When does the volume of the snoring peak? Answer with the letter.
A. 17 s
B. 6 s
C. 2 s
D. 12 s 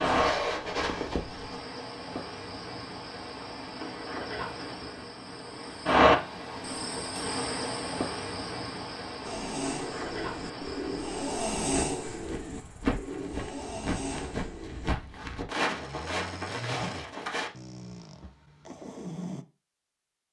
D.